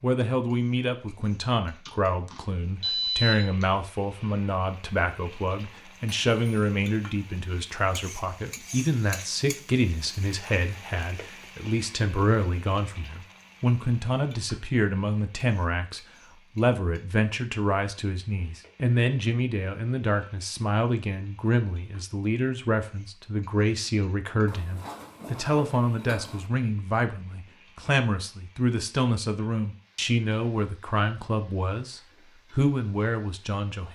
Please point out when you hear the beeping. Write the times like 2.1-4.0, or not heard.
1.9-3.6.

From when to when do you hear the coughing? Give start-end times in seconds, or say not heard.
not heard.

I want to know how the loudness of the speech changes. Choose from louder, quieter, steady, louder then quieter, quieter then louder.
steady.